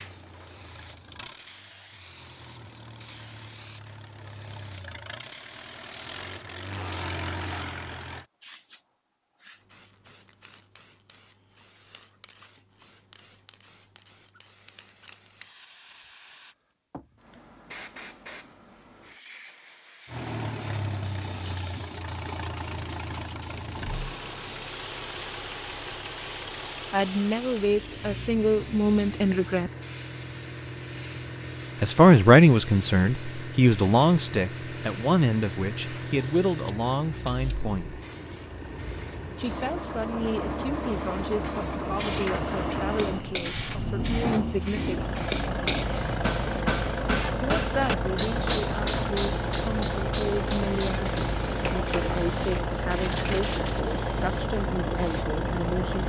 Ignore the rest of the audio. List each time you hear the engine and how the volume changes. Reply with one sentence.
You can hear the engine from 0.0 to 8.2 s, getting louder; and from 20.1 to 56.0 s, getting louder.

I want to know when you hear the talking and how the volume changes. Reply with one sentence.
You can hear the talking briefly from 26.9 to 29.7 s; from 31.8 to 38.0 s, getting quieter; from 39.4 to 45.1 s, at a steady volume; and from 47.4 to 56.0 s, at a steady volume.